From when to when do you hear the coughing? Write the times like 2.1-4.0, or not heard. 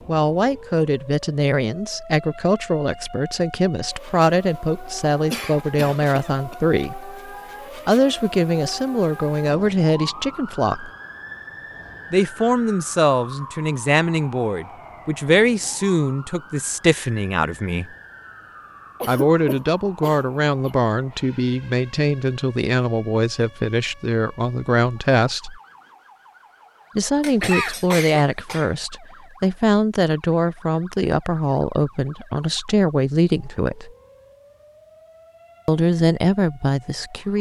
5.3-6.5, 19.0-20.7, 27.2-28.7.